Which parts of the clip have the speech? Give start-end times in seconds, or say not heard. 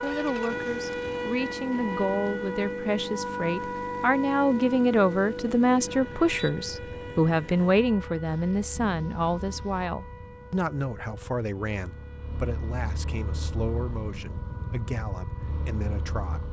0.0-16.4.